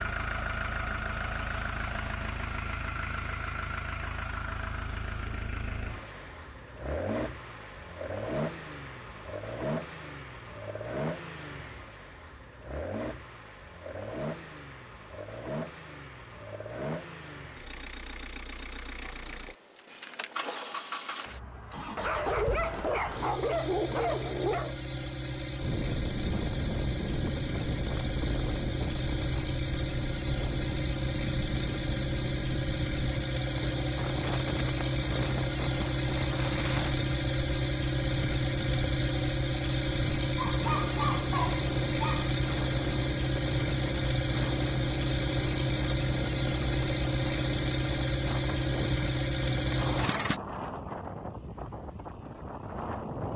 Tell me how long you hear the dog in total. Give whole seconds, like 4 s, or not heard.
5 s.